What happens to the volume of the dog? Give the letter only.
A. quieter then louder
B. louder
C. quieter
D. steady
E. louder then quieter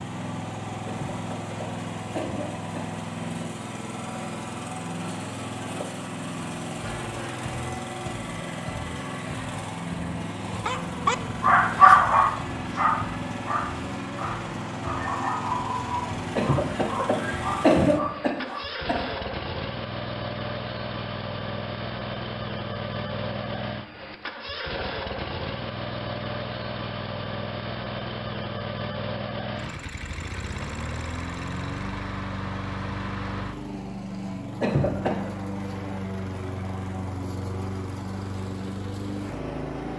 C.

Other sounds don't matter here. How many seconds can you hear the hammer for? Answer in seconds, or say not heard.
not heard.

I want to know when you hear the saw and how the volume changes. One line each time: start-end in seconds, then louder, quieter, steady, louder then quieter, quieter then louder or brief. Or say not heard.
not heard.